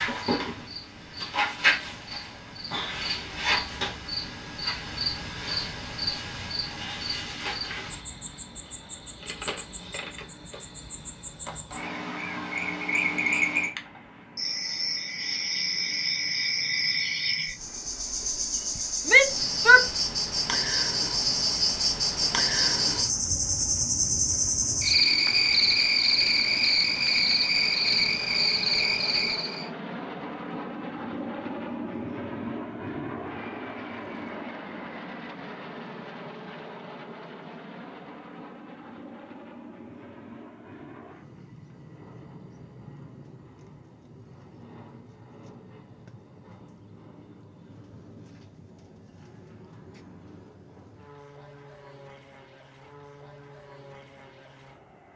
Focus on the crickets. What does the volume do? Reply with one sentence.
The volume of the crickets goes down, then up.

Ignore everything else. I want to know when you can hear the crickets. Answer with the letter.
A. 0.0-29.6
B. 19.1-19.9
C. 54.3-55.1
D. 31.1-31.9
A.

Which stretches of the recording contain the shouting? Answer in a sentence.
You can hear the shouting from 19.1 to 19.9 s.